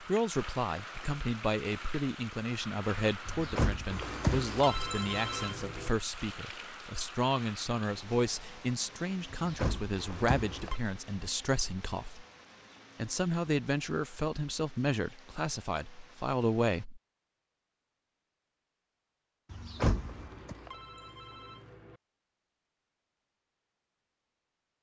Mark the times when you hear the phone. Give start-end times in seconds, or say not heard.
3.9-5.9, 9.9-10.8, 19.9-22.0.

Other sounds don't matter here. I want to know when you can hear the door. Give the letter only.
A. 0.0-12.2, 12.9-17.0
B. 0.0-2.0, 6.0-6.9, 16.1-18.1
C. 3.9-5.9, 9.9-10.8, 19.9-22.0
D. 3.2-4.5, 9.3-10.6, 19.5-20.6
D.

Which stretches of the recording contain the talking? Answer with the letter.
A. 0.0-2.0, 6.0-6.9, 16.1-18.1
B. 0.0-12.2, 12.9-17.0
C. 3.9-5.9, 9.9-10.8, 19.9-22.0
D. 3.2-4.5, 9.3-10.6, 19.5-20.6
B.